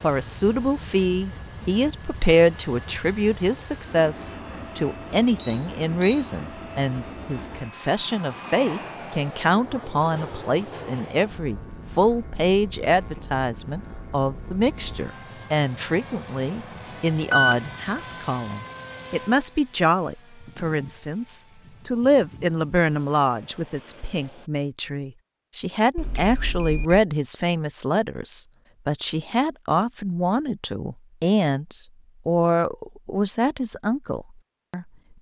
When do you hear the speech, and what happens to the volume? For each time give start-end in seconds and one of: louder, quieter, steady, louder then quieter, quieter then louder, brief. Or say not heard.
0.0-35.1 steady.